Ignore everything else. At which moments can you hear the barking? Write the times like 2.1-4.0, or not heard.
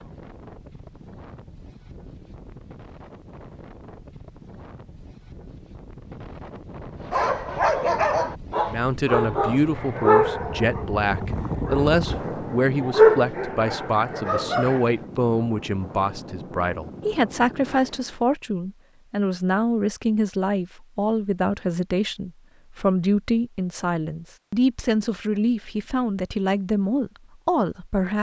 7.1-14.9.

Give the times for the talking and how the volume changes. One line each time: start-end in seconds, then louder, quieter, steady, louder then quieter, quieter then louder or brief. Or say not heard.
8.7-28.1 steady.